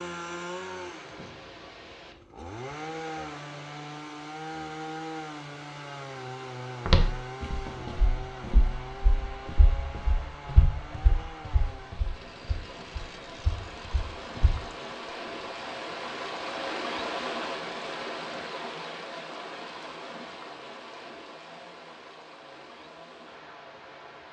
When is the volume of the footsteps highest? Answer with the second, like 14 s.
7 s.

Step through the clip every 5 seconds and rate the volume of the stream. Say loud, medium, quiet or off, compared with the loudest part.
quiet, quiet, medium, loud, medium.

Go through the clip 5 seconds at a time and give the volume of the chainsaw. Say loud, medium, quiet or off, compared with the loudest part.
loud, loud, medium, quiet, quiet.